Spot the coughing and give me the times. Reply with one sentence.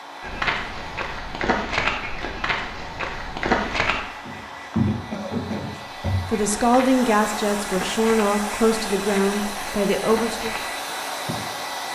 You can hear the coughing from 5.1 to 6.2 s.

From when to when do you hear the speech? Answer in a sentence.
You can hear the speech from 6.2 to 10.6 s.